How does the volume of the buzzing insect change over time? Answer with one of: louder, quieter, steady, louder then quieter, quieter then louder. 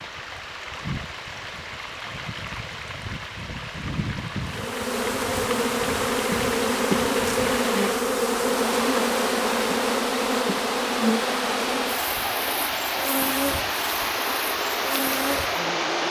quieter.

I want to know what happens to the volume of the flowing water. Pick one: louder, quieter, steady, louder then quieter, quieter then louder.
louder.